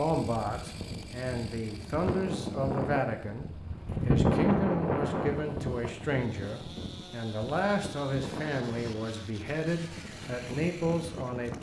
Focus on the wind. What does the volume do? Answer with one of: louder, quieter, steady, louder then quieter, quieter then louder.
louder then quieter.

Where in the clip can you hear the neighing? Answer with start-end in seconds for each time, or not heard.
not heard.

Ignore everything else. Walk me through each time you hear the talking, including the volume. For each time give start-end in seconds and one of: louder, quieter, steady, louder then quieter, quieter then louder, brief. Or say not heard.
0.0-11.5 steady.